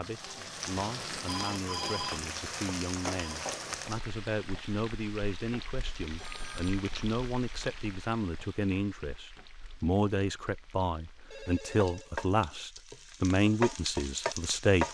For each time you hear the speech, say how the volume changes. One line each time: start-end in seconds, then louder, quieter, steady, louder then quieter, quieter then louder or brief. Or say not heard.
0.0-14.8 louder.